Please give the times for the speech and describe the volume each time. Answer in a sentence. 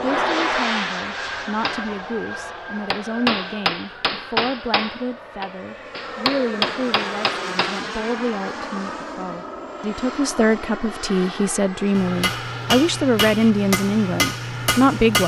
You can hear the speech from 0.0 to 15.2 s, getting louder.